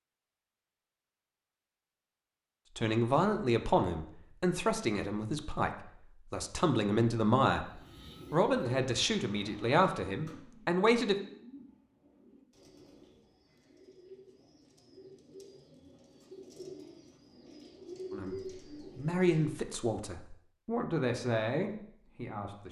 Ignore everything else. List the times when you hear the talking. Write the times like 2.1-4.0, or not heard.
2.8-5.7, 6.3-11.2, 18.1-22.6.